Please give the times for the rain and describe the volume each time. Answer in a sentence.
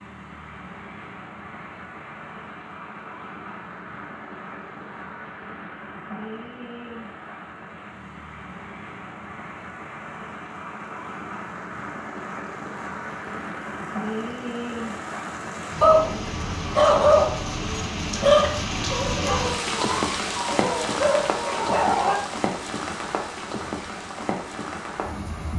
The rain can be heard from 0.0 to 25.5 s, getting louder.